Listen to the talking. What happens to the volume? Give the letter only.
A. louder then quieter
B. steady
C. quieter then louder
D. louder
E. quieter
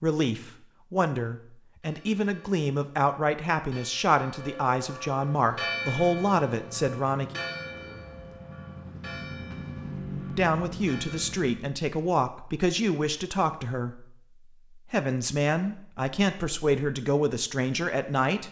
B.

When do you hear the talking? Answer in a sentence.
You can hear the talking from 0.0 to 7.4 s, from 10.2 to 14.2 s and from 14.8 to 18.4 s.